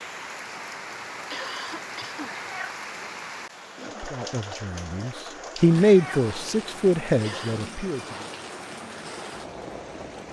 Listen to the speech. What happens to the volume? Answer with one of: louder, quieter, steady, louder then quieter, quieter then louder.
louder then quieter.